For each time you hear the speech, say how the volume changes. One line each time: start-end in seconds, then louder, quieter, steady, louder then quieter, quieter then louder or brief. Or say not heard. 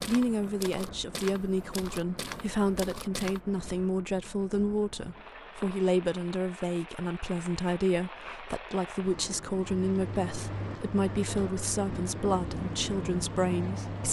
0.1-14.0 steady.